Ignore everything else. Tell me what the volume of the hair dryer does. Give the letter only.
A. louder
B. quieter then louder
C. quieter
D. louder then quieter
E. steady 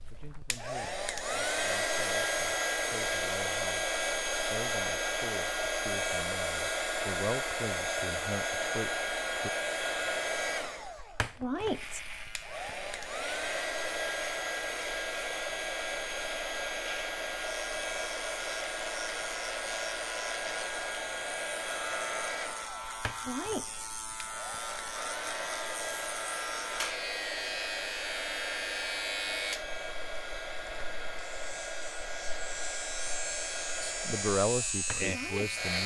C.